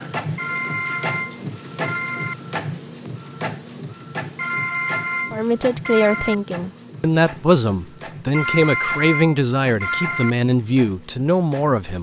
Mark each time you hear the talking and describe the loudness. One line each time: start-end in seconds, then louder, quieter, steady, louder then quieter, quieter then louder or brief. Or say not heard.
5.3-11.9 steady.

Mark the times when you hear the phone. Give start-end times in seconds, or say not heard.
0.3-2.4, 4.3-6.3, 8.3-10.3.